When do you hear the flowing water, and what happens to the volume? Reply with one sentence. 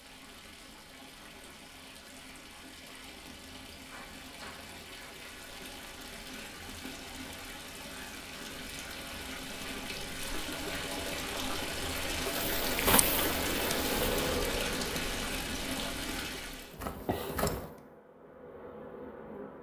You can hear the flowing water from 0.0 to 16.8 s, getting louder.